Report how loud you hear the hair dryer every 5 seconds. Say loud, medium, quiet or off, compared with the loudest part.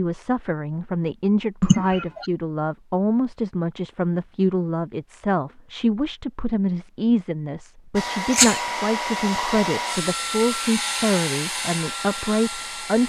off, loud, loud.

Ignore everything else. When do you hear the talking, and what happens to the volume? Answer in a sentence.
You can hear the talking from 0.0 to 13.0 s, at a steady volume.